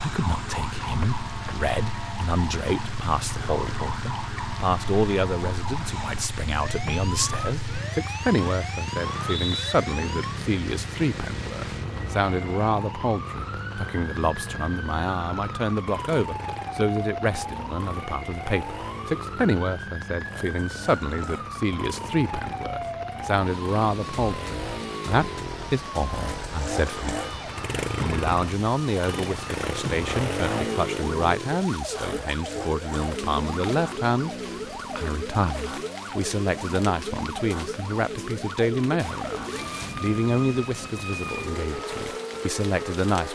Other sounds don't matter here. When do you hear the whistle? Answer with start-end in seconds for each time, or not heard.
9.0-9.8.